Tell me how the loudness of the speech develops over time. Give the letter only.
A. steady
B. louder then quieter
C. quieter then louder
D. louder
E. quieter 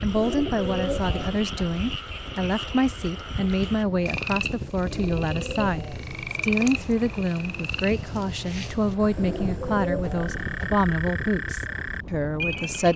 A.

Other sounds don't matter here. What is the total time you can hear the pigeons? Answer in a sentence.
The pigeons can be heard for 5 seconds in total.